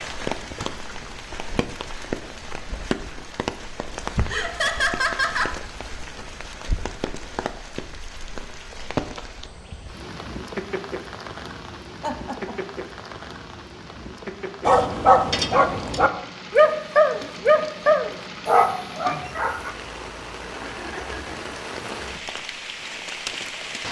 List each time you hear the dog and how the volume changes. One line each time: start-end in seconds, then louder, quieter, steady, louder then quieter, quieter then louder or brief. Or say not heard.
14.7-19.7 steady.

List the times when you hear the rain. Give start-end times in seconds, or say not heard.
0.0-23.8.